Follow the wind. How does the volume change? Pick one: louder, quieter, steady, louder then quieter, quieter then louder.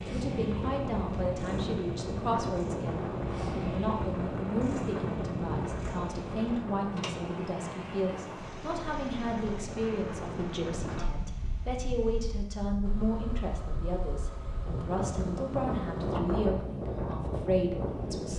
quieter then louder.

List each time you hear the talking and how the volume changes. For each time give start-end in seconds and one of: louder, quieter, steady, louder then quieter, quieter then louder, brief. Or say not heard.
0.0-18.3 steady.